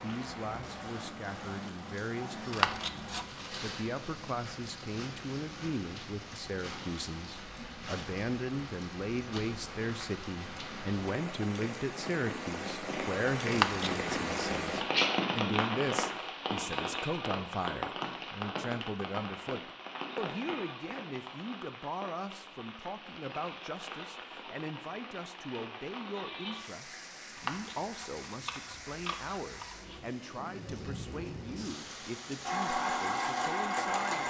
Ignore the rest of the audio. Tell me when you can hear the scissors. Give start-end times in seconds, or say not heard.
2.5-3.5, 13.5-14.1, 27.4-30.0.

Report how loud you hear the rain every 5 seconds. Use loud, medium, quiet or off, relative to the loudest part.
medium, medium, loud, loud, medium, medium, medium.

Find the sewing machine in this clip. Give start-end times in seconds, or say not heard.
32.4-34.2.